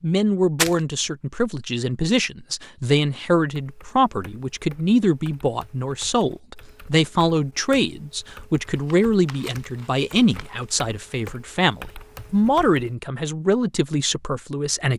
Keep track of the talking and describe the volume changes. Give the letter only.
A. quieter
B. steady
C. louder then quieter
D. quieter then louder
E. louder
B.